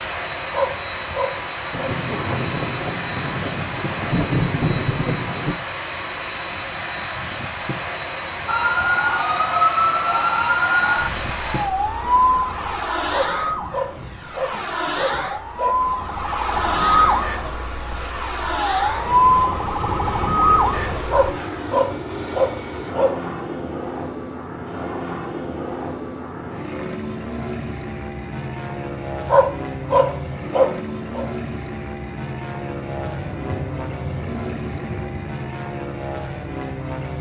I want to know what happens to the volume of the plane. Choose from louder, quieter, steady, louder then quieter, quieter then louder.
steady.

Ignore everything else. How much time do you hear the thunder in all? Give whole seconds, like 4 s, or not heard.
8 s.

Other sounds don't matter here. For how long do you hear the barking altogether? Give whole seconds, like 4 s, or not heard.
8 s.